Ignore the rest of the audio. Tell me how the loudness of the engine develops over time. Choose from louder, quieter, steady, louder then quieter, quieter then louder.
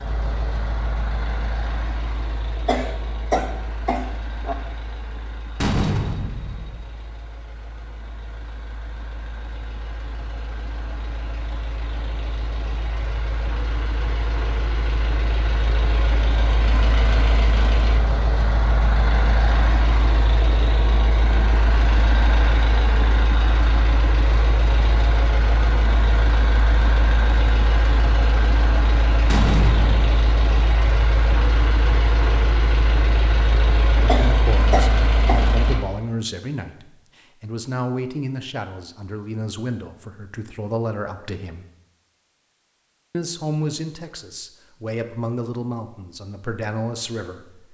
louder.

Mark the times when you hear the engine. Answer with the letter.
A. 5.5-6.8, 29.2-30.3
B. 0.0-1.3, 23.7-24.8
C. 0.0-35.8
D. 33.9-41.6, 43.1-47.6
C.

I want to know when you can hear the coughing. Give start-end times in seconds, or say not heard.
2.6-4.5, 34.0-35.5.